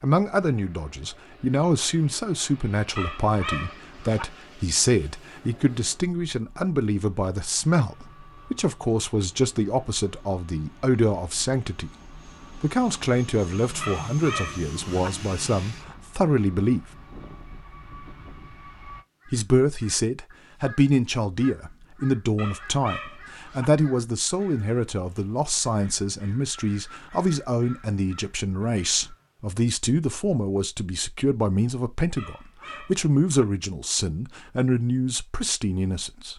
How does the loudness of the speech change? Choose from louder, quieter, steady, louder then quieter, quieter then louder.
steady.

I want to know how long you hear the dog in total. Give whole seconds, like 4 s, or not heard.
5 s.